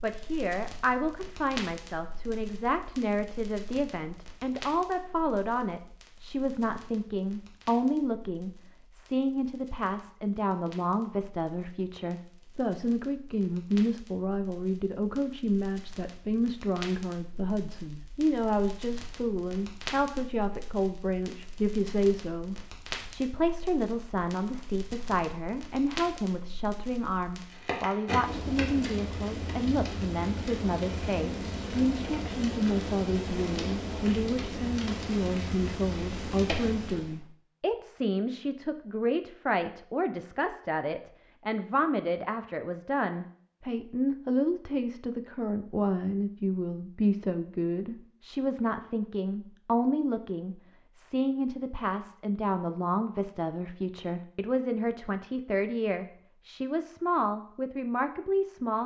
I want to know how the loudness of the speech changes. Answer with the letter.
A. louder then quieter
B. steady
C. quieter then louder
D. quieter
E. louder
B.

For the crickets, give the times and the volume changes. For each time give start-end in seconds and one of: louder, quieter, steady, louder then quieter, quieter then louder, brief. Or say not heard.
not heard.